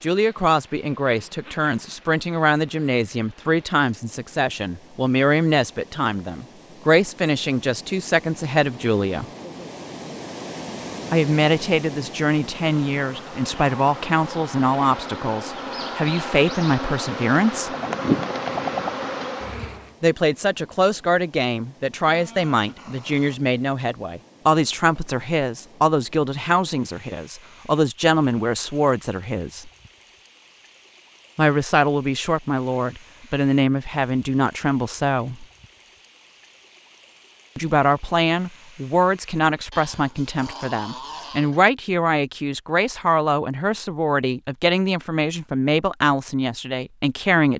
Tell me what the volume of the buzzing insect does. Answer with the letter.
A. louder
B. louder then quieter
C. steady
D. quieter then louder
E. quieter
A.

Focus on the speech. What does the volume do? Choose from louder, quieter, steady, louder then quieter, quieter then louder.
steady.